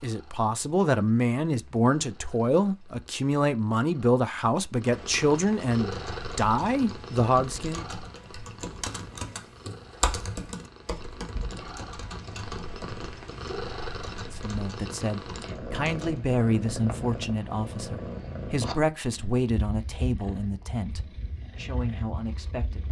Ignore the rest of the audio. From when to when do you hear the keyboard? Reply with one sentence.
The keyboard can be heard from 5.8 to 16.3 s.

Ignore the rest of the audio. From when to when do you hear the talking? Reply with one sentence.
You can hear the talking from 0.0 to 7.8 s and from 14.2 to 22.8 s.